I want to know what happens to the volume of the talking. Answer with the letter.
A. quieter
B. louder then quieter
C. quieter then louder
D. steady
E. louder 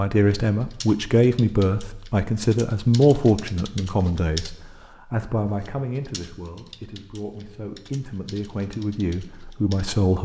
C.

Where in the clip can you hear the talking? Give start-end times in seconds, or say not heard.
0.0-10.1.